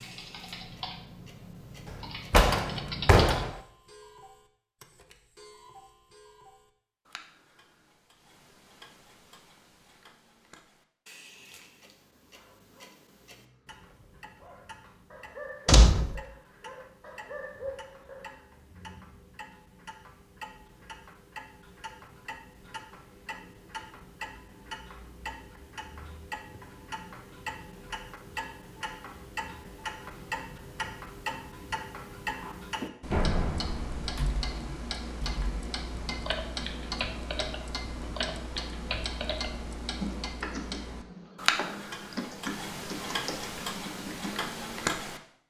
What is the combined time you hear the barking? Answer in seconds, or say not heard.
7 s.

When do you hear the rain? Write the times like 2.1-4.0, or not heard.
not heard.